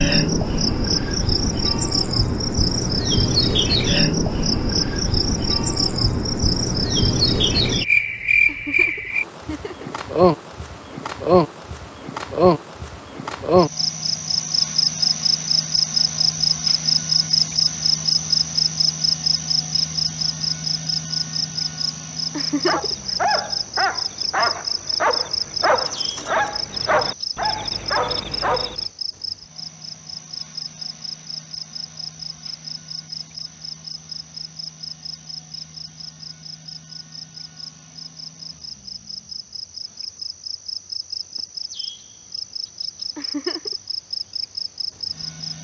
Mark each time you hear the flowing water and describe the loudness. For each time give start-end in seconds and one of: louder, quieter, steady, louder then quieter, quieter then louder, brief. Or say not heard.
not heard.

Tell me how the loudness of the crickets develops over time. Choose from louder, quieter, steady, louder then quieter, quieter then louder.
quieter.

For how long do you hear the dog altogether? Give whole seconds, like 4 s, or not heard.
6 s.